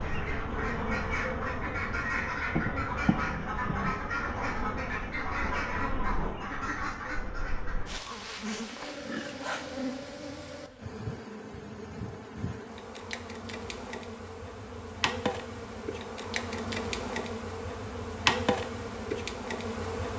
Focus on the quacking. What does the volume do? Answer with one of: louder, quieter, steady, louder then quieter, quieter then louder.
steady.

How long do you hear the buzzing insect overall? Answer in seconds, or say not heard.
20 s.